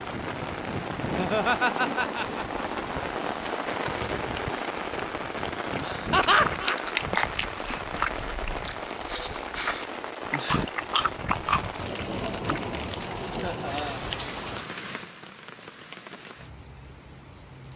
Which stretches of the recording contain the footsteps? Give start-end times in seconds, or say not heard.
not heard.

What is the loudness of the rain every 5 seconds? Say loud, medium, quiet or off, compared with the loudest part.
loud, loud, loud, quiet.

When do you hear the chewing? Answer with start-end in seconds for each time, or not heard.
5.5-12.6.